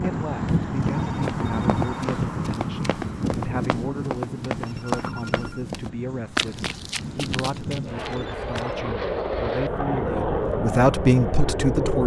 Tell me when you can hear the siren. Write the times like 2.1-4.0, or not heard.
not heard.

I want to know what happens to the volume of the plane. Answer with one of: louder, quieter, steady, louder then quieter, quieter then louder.
quieter then louder.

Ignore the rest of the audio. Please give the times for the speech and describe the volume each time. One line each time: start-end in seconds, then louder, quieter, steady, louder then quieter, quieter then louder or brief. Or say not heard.
0.0-12.0 louder.